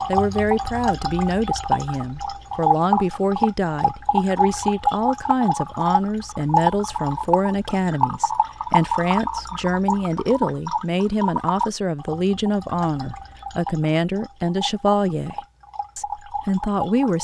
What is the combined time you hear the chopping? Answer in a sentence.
You can't hear the chopping here.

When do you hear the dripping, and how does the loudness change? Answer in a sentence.
The dripping can be heard from 0.0 to 17.1 s, getting quieter.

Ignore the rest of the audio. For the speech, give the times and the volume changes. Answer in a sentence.
You can hear the speech from 0.1 to 17.1 s, at a steady volume.